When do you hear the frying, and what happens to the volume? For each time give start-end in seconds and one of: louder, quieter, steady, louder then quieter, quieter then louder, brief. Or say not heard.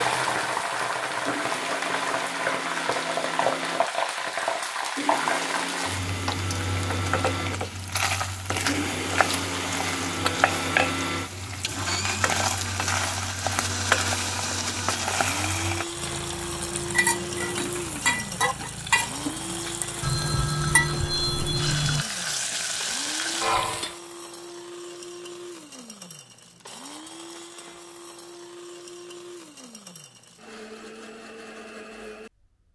0.0-24.0 steady.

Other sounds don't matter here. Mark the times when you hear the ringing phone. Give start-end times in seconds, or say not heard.
20.0-22.1.